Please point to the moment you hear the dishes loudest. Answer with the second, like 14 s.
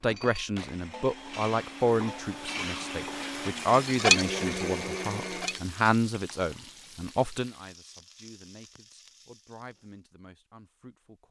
4 s.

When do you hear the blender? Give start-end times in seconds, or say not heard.
0.0-5.7.